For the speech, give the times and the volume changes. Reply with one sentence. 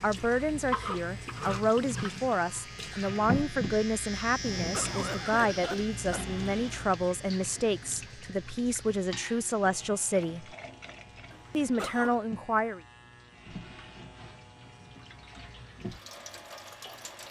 The speech can be heard from 0.0 to 10.6 s, at a steady volume; and briefly from 11.5 to 12.8 s.